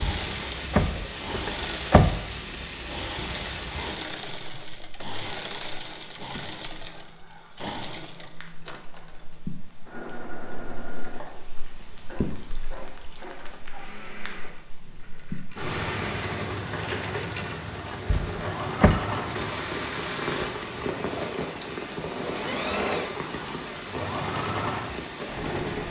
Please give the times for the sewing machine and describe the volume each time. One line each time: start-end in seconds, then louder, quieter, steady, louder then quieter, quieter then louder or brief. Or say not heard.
0.0-25.8 quieter then louder.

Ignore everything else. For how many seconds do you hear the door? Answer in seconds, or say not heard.
3 s.